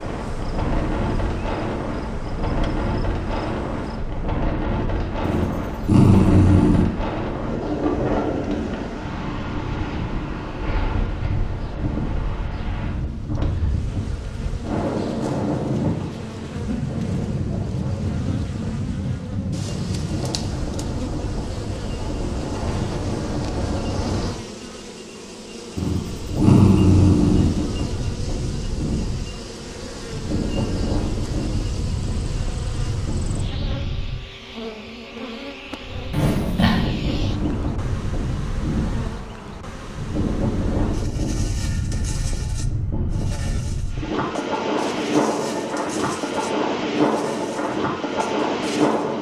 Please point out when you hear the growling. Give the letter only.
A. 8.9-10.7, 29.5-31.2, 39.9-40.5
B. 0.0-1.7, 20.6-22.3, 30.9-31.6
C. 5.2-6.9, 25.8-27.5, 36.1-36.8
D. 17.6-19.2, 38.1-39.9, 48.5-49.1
C.